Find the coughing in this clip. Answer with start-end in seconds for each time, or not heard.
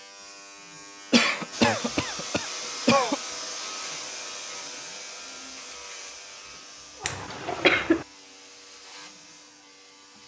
1.1-3.1, 7.0-8.1.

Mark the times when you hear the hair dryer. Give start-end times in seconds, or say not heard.
1.5-10.2.